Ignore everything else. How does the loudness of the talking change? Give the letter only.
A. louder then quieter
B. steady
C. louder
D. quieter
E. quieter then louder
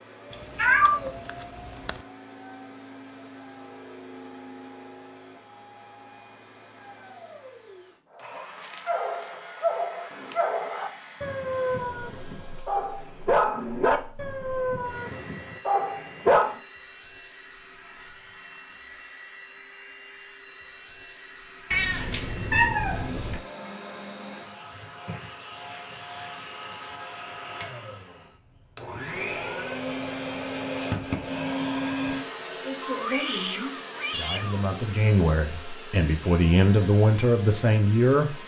C.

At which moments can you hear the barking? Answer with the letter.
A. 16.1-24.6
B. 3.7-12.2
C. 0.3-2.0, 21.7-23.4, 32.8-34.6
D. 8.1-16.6
D.